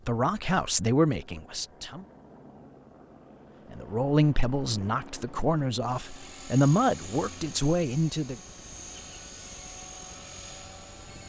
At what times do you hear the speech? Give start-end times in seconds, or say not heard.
0.1-2.0, 3.7-8.3.